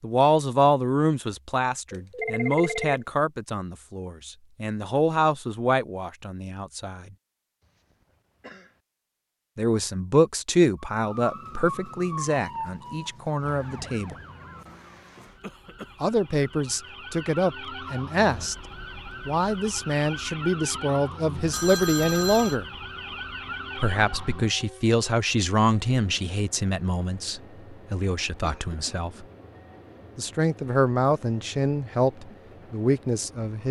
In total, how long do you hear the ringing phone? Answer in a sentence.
You can hear the ringing phone for 2 seconds altogether.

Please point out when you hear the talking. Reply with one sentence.
You can hear the talking from 0.0 to 7.0 s, from 9.6 to 14.2 s, from 16.0 to 18.6 s, from 19.2 to 22.6 s, from 23.8 to 29.2 s and from 30.1 to 33.6 s.